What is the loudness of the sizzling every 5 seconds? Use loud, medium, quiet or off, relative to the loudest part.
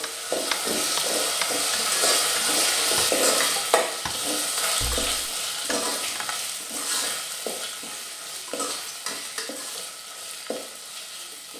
loud, medium, quiet.